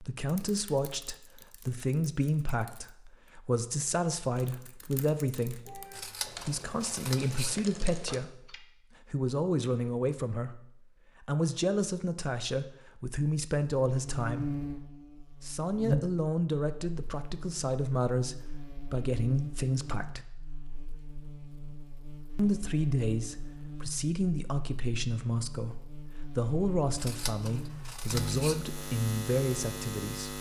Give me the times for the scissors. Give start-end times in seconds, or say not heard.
5.9-7.6, 26.9-28.6.